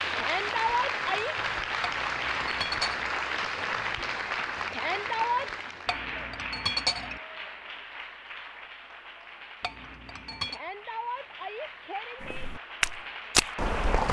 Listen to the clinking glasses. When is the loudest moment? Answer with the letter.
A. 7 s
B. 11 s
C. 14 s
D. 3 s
A.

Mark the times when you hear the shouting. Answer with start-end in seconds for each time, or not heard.
0.1-1.4, 4.7-5.5, 10.4-12.4.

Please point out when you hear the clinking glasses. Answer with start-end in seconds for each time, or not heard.
1.8-3.1, 5.8-7.2, 9.6-10.6.